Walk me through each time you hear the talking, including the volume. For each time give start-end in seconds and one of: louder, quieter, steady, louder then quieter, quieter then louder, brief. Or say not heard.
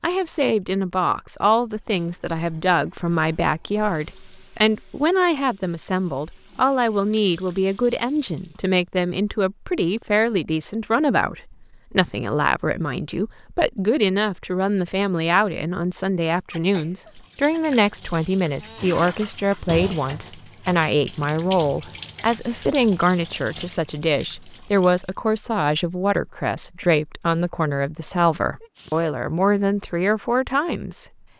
0.0-31.1 steady.